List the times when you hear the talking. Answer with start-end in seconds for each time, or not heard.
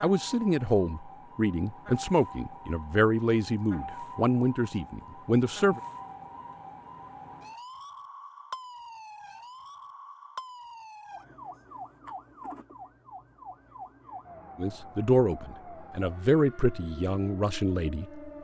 0.0-5.8, 14.6-18.2.